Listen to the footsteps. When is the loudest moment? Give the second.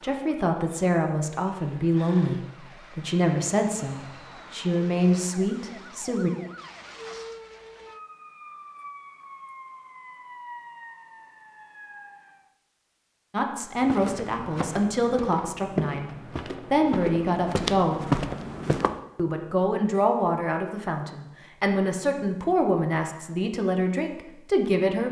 18 s.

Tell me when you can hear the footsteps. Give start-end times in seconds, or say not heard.
13.8-19.0.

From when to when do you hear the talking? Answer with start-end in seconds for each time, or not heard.
0.0-6.3, 13.3-18.1, 19.1-25.0.